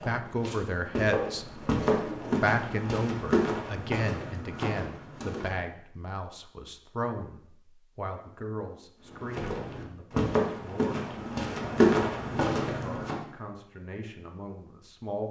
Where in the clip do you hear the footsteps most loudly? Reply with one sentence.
The volume of the footsteps peaks at 12 seconds.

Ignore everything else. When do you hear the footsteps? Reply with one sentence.
You can hear the footsteps from 0.0 to 5.7 s and from 9.1 to 13.2 s.